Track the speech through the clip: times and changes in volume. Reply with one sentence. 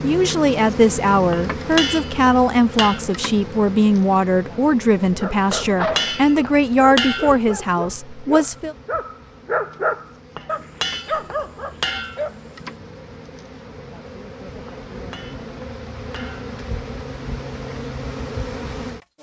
You can hear the speech from 0.0 to 8.8 s, at a steady volume.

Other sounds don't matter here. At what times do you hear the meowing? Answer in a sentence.
You can hear the meowing from 5.6 to 6.3 s.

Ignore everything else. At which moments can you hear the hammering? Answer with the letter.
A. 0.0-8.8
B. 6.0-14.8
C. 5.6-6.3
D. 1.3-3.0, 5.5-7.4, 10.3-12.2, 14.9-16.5
D.